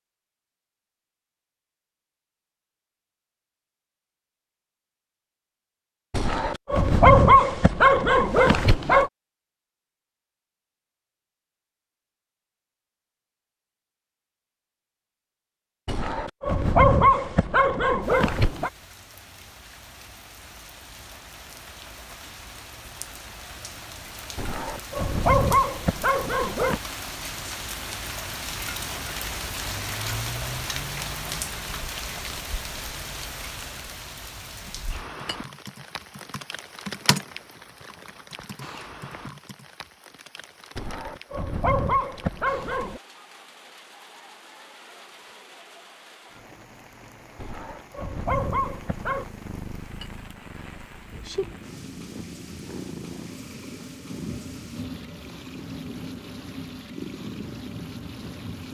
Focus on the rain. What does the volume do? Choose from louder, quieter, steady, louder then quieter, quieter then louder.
louder then quieter.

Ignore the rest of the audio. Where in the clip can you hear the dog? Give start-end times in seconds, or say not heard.
6.1-9.1, 15.8-18.7, 24.4-26.8, 40.8-43.0, 47.4-49.2.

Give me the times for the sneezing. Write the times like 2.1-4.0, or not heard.
not heard.